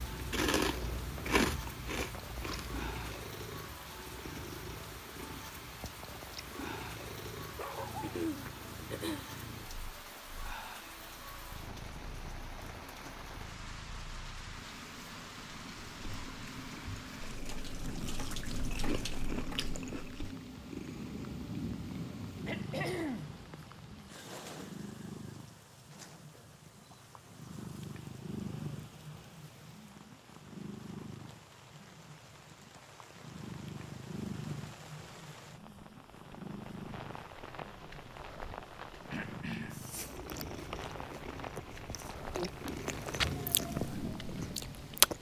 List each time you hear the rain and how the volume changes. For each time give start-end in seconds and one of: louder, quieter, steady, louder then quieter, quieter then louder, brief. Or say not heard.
0.0-45.1 quieter then louder.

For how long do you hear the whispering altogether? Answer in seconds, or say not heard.
not heard.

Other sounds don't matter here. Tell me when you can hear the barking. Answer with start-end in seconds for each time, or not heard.
7.5-8.2.